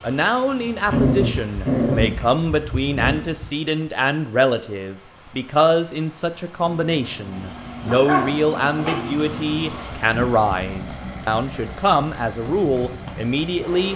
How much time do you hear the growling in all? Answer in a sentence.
You can hear the growling for 4 seconds altogether.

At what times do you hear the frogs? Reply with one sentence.
You can't hear the frogs here.